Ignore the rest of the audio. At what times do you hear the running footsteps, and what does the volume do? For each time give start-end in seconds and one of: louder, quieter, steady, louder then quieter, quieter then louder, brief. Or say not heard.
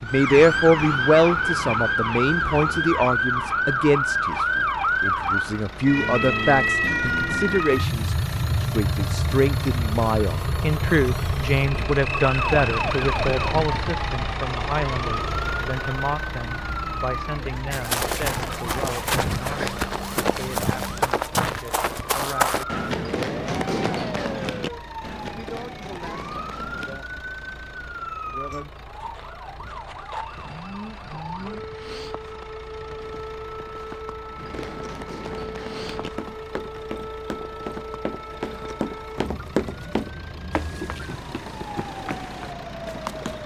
17.7-27.0 quieter
34.4-43.4 louder then quieter.